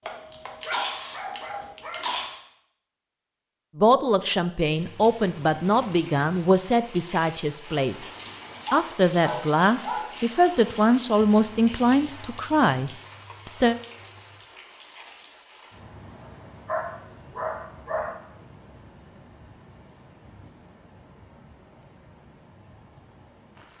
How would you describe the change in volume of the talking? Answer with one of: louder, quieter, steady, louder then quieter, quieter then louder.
steady.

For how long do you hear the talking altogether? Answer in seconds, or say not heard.
9 s.